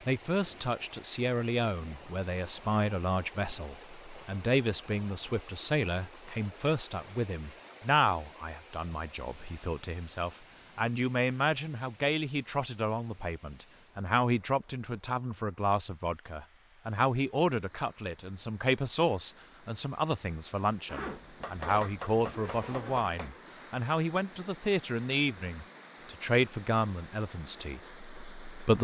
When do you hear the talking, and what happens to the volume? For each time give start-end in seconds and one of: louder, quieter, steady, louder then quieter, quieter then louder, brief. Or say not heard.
0.1-28.7 steady.